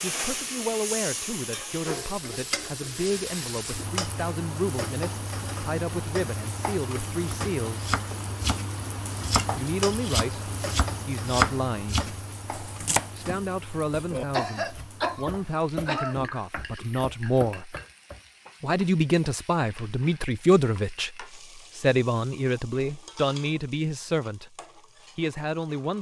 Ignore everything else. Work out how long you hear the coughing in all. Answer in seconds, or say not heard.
2 s.